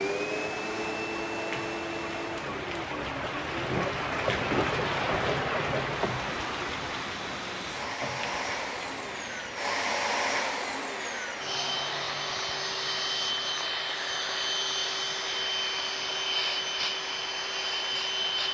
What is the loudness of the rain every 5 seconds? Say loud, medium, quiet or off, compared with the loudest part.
loud, loud, medium, medium.